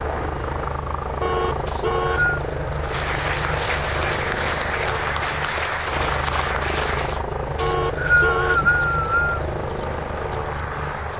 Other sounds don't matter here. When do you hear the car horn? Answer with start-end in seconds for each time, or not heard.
1.2-2.2, 7.5-8.7.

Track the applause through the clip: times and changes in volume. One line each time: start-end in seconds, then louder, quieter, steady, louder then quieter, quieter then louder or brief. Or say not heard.
2.8-7.2 steady.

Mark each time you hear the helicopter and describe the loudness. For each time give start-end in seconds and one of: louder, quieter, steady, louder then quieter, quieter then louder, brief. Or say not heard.
0.0-11.1 steady.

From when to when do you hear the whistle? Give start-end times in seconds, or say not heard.
1.6-2.4, 7.5-9.4.